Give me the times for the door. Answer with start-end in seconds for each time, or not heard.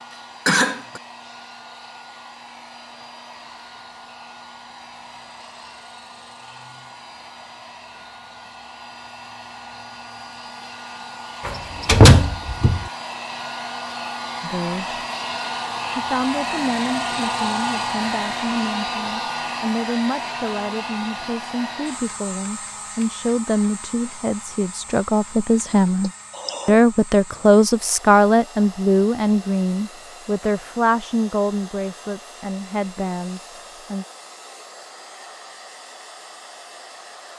11.4-12.8.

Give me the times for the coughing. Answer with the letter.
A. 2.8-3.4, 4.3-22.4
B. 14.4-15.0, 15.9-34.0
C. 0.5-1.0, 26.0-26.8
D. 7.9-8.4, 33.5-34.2
C.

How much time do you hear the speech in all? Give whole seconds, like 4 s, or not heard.
19 s.